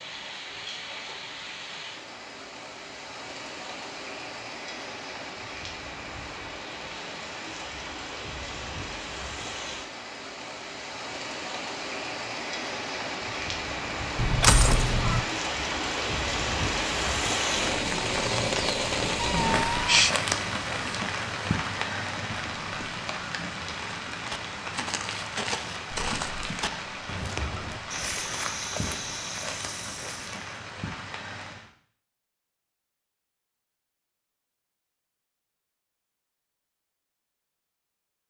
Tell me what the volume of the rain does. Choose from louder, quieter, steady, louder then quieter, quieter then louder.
louder then quieter.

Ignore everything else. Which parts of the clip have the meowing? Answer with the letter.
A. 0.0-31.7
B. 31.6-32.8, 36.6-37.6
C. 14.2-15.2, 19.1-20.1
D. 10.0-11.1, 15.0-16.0
C.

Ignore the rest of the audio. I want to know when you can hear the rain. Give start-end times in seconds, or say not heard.
0.0-31.7.